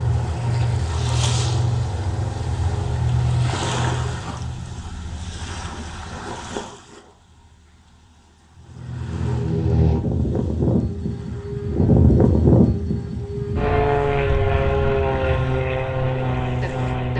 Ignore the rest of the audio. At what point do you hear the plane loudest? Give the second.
12 s.